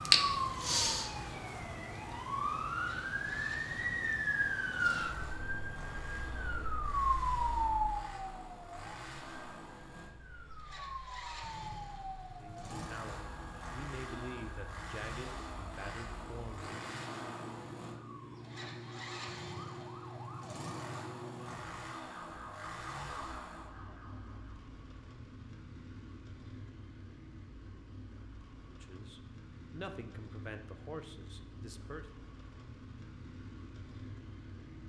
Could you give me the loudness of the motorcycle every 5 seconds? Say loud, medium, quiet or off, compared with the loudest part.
medium, loud, loud, loud, loud, medium, medium.